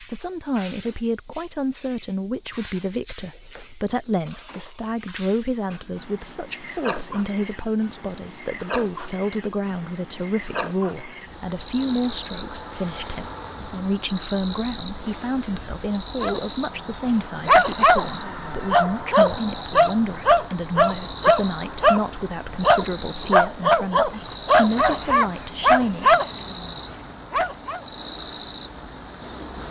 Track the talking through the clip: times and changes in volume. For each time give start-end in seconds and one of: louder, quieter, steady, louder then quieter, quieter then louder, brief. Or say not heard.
0.0-26.1 steady.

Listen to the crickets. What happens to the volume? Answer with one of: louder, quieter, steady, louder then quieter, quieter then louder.
steady.